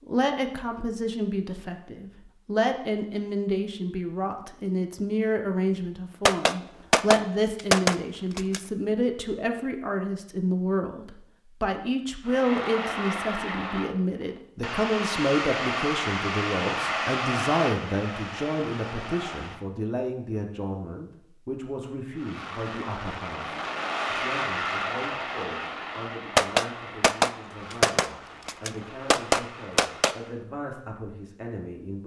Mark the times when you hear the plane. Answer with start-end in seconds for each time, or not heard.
12.2-19.6, 22.1-30.4.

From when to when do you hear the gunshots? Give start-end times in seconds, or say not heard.
6.2-8.6, 26.4-30.1.